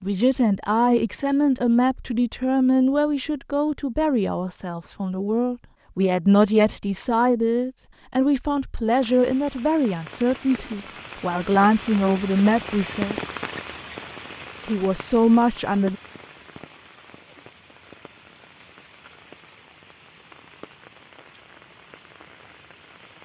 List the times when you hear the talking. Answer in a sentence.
The talking can be heard from 0.0 to 13.2 s and from 14.7 to 15.9 s.